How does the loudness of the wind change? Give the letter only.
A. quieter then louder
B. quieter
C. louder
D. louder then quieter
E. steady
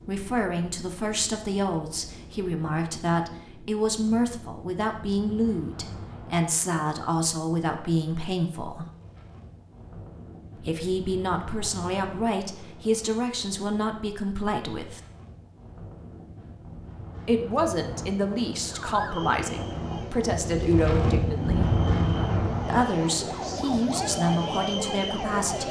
C.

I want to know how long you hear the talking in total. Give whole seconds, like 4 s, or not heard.
21 s.